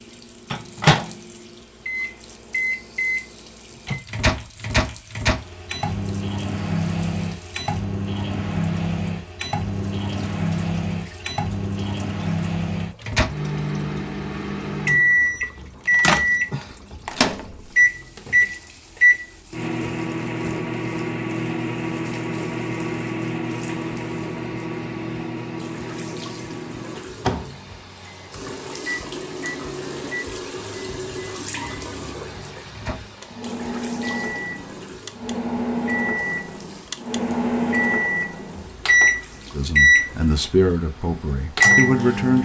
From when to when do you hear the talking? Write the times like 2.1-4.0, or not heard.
39.5-42.4.